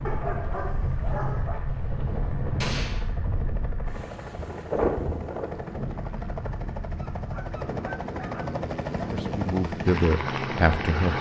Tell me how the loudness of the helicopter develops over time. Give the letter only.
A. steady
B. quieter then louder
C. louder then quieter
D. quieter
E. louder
E.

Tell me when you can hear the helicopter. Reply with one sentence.
The helicopter can be heard from 0.0 to 11.1 s.